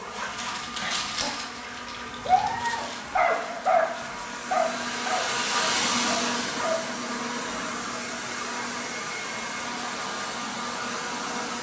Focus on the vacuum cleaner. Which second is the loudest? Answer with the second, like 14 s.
6 s.